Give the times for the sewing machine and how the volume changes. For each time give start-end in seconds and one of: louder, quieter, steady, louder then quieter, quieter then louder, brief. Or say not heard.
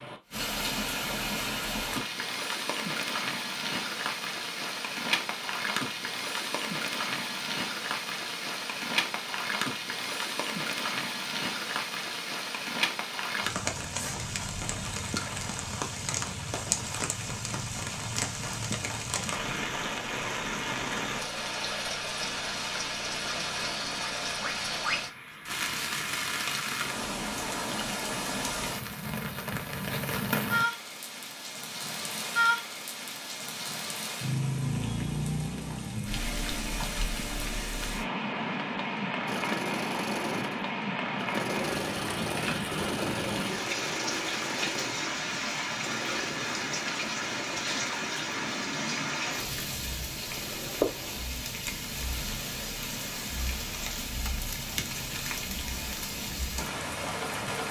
39.2-51.2 quieter.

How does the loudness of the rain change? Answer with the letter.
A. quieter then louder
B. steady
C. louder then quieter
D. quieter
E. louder
B.